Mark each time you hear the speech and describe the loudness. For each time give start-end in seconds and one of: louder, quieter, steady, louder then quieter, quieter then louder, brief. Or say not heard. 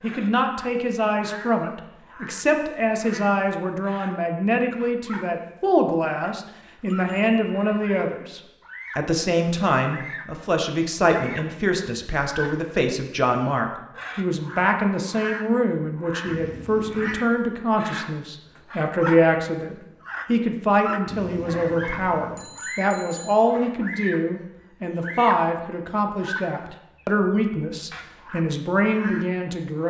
0.0-29.8 steady.